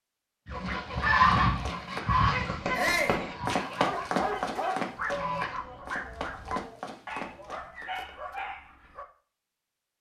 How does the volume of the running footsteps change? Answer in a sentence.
The volume of the running footsteps goes up, then down.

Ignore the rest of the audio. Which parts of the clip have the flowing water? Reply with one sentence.
You can't hear the flowing water here.